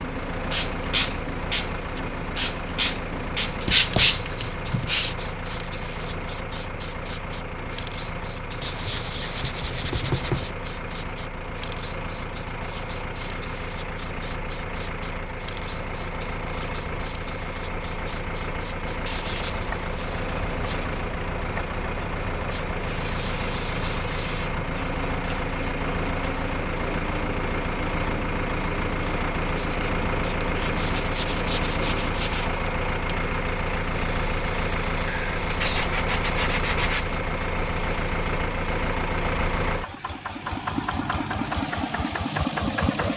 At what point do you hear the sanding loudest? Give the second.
4 s.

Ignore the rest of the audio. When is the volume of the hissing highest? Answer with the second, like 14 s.
1 s.